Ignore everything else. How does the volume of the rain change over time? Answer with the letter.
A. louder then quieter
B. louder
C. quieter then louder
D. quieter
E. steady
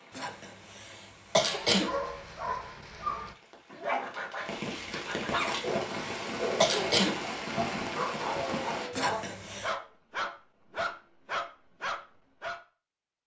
B.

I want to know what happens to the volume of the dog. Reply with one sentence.
The volume of the dog stays about the same.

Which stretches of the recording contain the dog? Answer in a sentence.
You can hear the dog from 1.4 to 12.6 s.